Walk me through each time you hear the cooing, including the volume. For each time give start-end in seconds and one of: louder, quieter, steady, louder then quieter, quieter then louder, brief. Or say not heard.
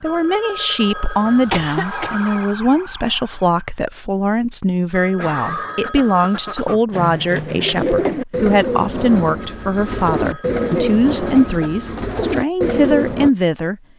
6.9-13.3 steady.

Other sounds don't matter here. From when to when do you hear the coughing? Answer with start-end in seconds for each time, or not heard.
1.5-2.1, 5.0-6.8, 10.6-12.2.